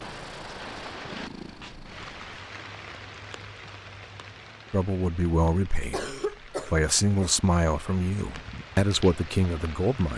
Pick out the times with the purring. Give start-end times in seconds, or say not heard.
0.0-2.4.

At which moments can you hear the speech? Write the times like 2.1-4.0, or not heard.
4.7-10.1.